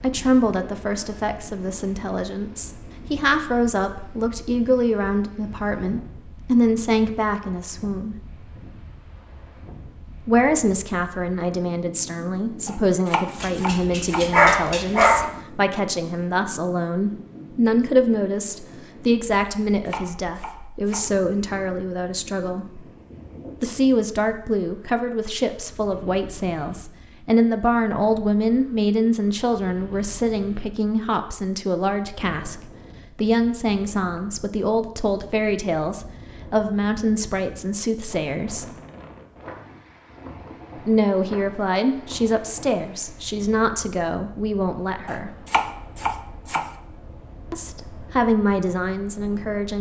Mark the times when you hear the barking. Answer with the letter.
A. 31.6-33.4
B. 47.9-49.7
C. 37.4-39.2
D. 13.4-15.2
D.